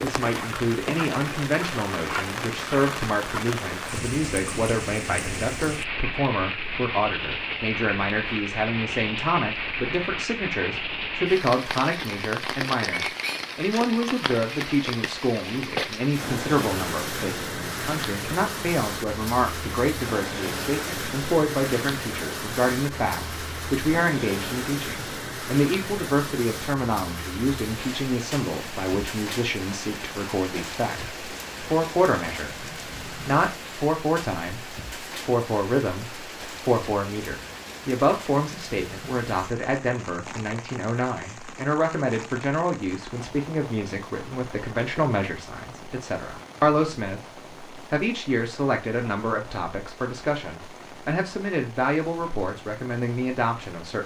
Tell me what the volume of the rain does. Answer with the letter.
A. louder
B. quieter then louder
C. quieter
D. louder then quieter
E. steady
C.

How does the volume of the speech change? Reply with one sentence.
The loudness of the speech stays about the same.